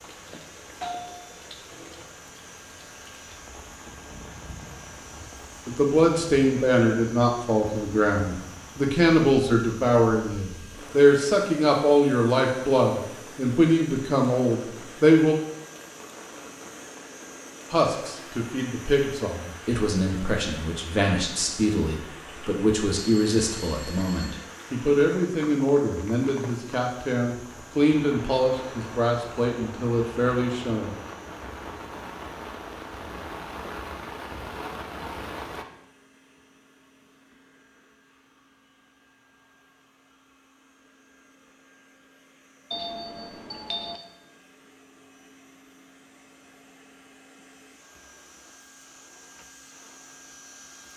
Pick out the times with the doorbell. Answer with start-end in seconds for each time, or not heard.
0.0-2.0, 23.0-24.4, 42.7-44.0.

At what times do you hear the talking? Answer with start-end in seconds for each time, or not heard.
5.7-15.3, 17.7-30.9.